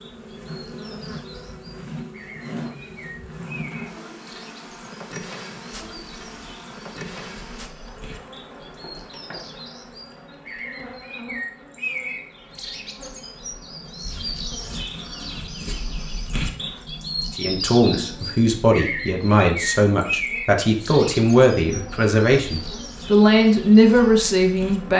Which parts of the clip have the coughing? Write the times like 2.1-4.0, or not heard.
not heard.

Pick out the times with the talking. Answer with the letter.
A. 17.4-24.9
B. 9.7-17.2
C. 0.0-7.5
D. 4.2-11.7
A.